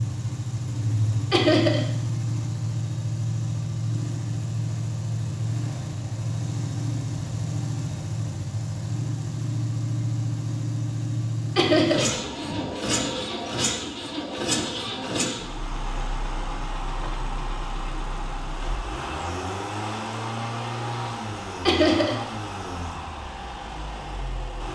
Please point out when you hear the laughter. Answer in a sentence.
You can hear the laughter from 1.3 to 1.8 s, from 11.6 to 12.1 s and from 21.6 to 22.1 s.